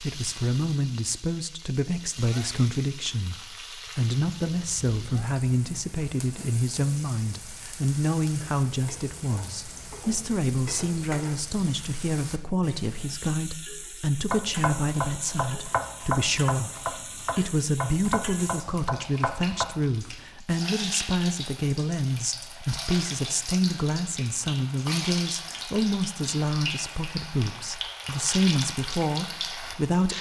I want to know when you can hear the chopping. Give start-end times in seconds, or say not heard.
14.3-19.6.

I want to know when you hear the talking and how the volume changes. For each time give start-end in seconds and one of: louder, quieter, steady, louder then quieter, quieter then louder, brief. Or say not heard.
0.0-30.1 steady.